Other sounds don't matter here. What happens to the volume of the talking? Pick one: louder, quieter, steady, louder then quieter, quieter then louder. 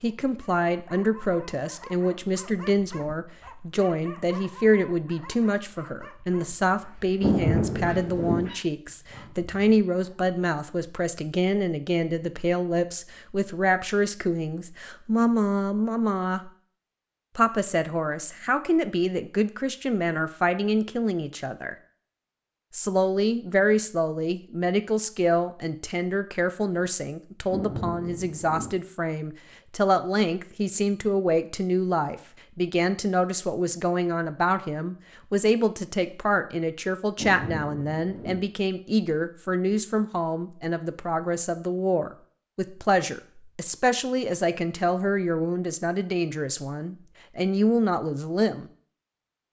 steady.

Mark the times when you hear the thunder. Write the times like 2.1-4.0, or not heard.
7.2-8.5, 27.4-28.8, 37.1-38.5.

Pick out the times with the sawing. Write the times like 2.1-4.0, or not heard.
not heard.